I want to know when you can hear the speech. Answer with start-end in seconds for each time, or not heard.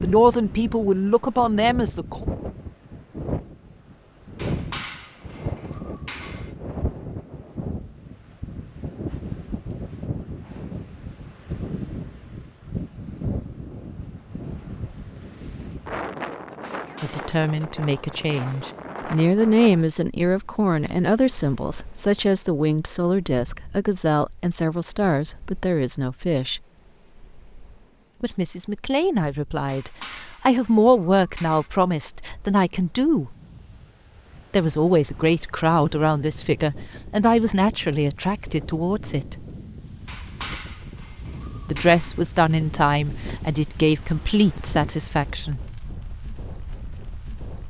0.0-2.2, 17.0-26.6, 28.2-33.4, 34.5-39.4, 41.6-45.6.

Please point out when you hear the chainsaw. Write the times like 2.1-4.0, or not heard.
not heard.